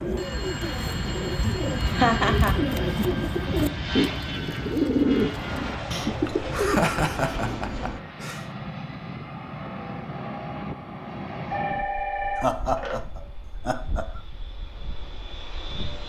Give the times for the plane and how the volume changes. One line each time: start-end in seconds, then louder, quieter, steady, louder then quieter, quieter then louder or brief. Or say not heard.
0.0-16.0 quieter.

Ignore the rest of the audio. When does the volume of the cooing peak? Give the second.
5 s.